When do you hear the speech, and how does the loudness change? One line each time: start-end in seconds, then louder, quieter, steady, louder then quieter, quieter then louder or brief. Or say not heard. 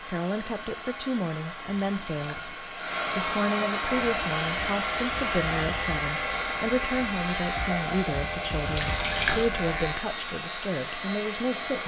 0.0-11.8 steady.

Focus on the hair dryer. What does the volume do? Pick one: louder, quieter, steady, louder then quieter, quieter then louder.
louder then quieter.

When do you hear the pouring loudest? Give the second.
9 s.